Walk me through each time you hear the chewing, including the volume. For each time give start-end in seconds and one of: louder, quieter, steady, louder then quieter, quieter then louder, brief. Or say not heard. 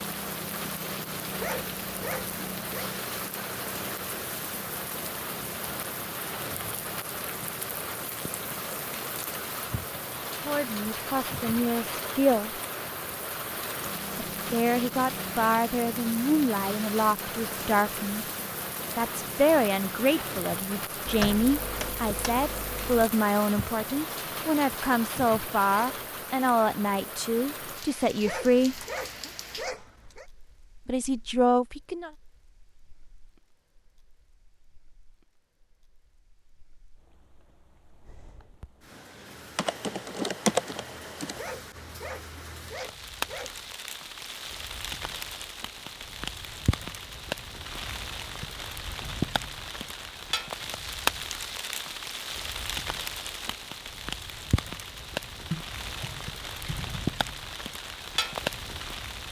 not heard.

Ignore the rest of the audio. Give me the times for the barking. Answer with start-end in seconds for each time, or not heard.
1.4-2.9, 28.2-30.2, 41.4-43.6.